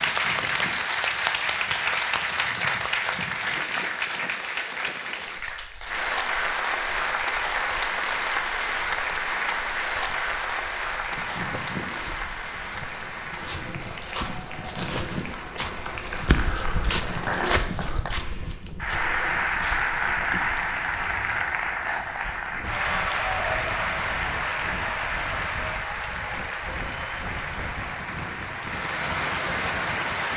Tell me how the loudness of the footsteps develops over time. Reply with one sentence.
The volume of the footsteps goes up, then down.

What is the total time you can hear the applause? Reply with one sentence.
The applause can be heard for 30 seconds in total.